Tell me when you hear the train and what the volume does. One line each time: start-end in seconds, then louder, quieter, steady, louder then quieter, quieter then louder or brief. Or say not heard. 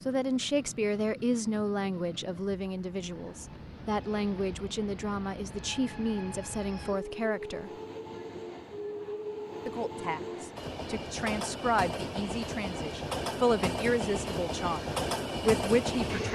0.0-16.3 louder.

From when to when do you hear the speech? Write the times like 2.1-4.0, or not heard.
0.1-7.7, 9.7-16.3.